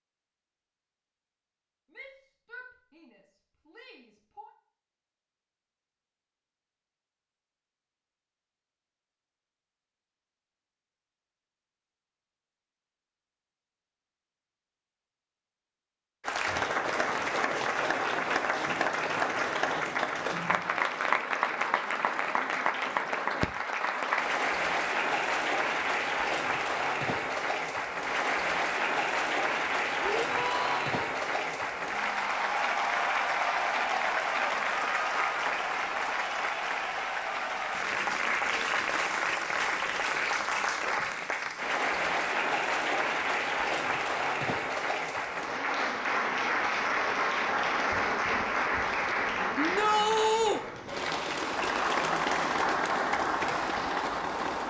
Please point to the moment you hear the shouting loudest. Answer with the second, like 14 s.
50 s.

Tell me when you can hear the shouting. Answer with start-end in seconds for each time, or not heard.
1.9-4.5, 30.0-30.9, 49.5-50.6.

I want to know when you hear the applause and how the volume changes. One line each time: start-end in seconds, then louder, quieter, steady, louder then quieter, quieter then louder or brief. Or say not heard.
16.2-54.6 steady.